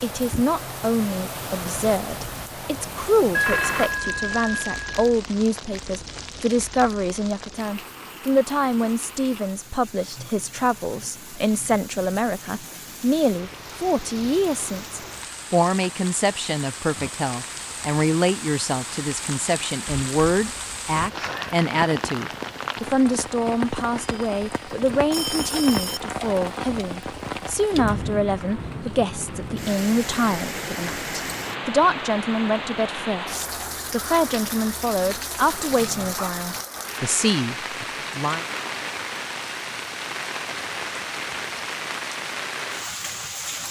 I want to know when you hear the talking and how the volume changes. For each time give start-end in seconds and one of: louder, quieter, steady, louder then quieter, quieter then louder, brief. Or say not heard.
0.0-38.5 steady.